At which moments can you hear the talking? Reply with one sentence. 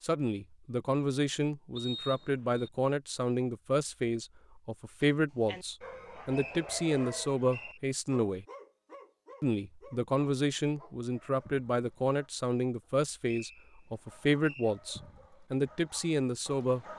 The talking can be heard from 0.0 to 8.4 s and from 9.4 to 16.9 s.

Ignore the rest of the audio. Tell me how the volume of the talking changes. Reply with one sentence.
The loudness of the talking stays about the same.